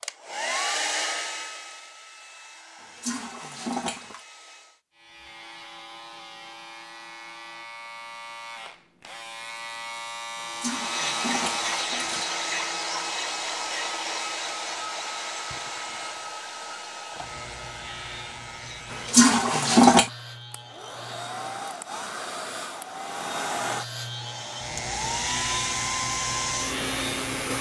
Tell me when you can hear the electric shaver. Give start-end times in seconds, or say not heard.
5.0-21.6, 23.6-27.5.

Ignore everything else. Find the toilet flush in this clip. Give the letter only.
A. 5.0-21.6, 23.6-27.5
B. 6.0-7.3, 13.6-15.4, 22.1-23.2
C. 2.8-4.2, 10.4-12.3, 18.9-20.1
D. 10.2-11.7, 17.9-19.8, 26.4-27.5
C.